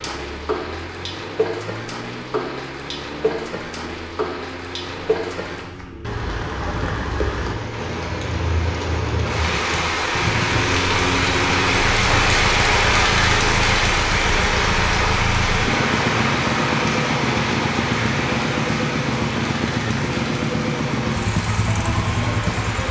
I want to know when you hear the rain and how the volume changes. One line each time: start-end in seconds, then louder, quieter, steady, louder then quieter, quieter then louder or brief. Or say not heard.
0.0-22.8 louder then quieter.